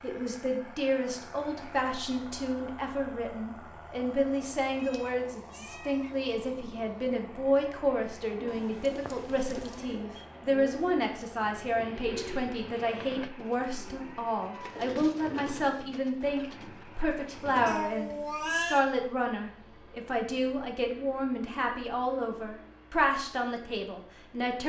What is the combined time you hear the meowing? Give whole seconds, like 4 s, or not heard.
4 s.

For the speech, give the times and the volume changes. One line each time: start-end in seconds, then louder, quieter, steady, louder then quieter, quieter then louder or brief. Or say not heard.
0.0-24.6 steady.